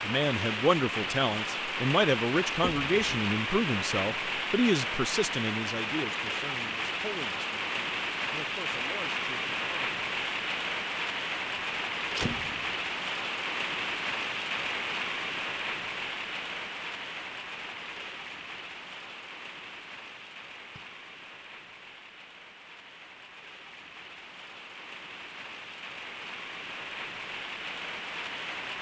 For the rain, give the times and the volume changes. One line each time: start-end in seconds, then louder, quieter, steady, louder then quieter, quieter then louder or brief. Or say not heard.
0.0-28.7 quieter.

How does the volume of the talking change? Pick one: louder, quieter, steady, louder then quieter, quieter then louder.
quieter.